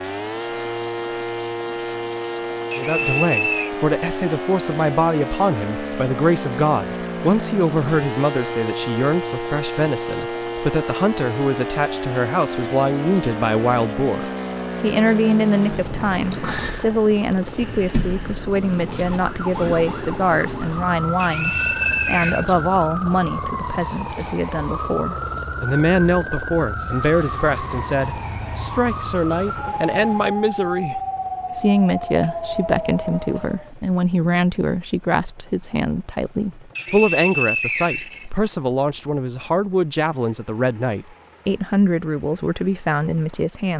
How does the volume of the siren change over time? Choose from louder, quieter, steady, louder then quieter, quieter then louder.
steady.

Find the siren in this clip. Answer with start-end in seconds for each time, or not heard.
0.0-33.7.